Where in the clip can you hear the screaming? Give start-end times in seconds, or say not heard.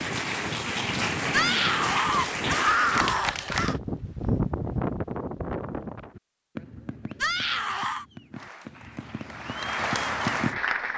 1.3-3.8, 7.2-8.1.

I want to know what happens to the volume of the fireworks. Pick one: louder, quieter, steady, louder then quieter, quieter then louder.
quieter then louder.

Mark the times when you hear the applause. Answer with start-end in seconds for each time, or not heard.
0.0-3.8, 8.3-10.9.